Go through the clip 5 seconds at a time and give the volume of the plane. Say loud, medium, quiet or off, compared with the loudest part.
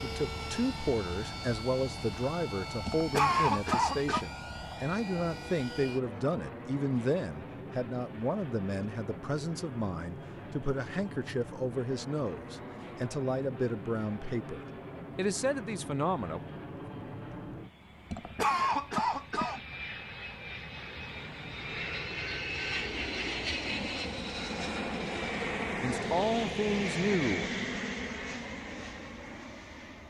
medium, medium, medium, medium, loud, loud.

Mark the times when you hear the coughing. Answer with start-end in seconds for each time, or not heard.
2.9-4.2, 18.1-19.6.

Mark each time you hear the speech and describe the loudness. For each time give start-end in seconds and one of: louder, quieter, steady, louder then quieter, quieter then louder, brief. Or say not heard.
0.0-16.4 steady
25.8-27.5 brief.